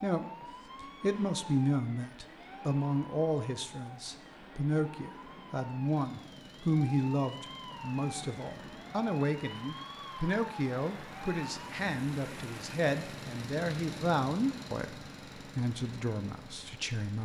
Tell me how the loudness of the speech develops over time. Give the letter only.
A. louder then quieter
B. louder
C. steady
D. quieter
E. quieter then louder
C.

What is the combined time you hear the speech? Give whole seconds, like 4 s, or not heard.
17 s.